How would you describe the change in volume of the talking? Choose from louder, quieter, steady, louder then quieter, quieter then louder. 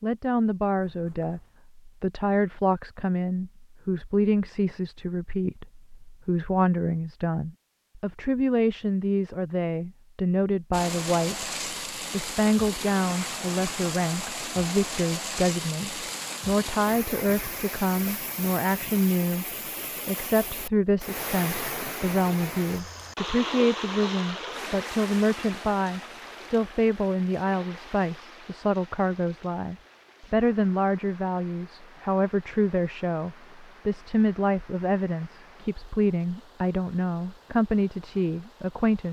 steady.